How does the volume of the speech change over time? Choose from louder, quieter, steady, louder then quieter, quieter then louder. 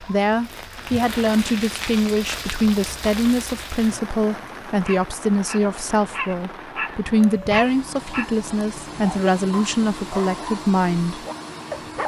steady.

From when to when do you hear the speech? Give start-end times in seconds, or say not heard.
0.0-11.2.